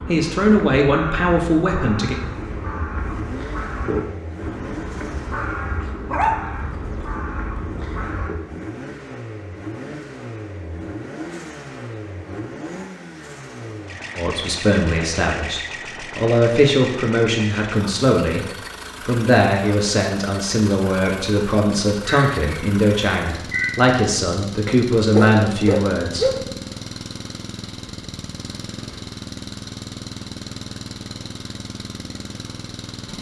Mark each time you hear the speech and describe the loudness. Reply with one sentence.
The speech can be heard briefly from 0.1 to 2.1 s; and from 14.2 to 26.3 s, at a steady volume.